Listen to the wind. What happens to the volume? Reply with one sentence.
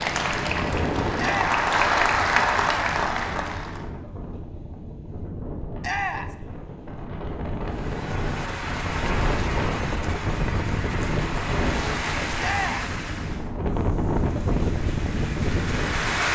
The volume of the wind goes down, then up.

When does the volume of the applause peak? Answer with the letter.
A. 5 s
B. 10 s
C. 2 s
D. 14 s
C.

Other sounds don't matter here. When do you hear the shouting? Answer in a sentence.
You can hear the shouting from 1.1 to 1.6 s, from 5.8 to 6.3 s and from 12.3 to 12.9 s.